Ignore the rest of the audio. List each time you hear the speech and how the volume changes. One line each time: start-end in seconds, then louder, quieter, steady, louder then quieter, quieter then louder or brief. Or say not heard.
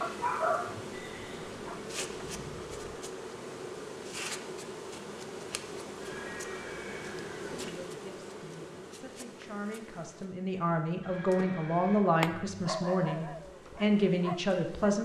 7.5-14.9 louder.